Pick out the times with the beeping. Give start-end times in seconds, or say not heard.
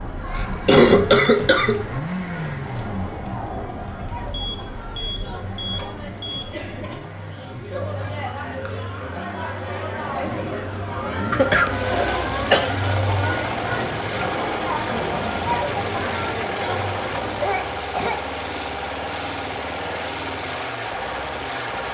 4.3-6.5.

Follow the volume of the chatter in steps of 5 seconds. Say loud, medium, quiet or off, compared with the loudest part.
medium, medium, loud, loud, off.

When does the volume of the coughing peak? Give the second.
1 s.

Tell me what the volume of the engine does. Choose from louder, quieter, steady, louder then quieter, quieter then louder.
quieter then louder.